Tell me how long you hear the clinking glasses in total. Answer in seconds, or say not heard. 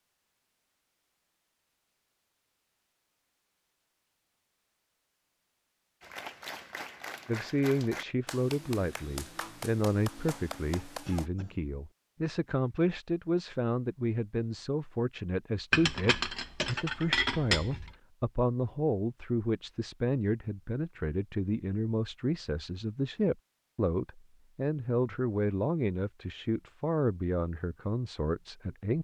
2 s.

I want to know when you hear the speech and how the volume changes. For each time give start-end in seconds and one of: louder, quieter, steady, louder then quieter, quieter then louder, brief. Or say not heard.
7.2-28.9 steady.